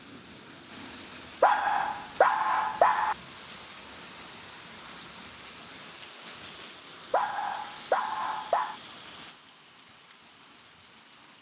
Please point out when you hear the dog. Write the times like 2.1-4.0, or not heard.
1.4-3.1, 7.1-8.8.